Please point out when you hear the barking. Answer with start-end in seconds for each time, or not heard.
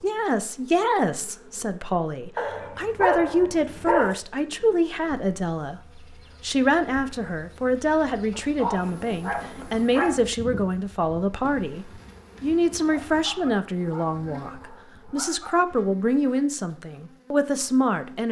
2.4-4.2, 8.3-10.2, 12.9-15.6.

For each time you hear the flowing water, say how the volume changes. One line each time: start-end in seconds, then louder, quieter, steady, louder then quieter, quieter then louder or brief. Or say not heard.
not heard.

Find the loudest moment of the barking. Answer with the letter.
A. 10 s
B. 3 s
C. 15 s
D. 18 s
B.